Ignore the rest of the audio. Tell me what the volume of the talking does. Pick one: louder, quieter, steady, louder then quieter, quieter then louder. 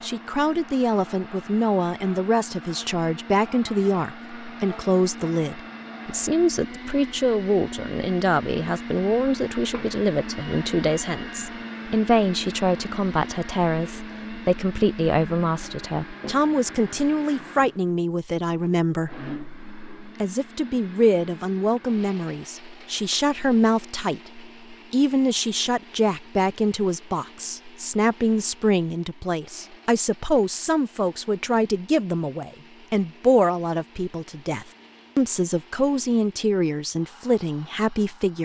steady.